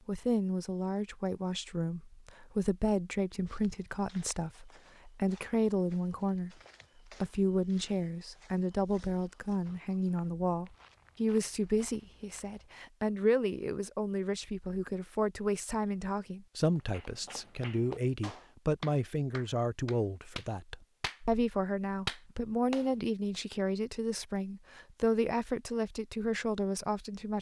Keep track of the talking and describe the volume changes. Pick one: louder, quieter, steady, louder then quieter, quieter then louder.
steady.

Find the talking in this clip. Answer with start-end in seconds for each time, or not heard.
0.1-27.3.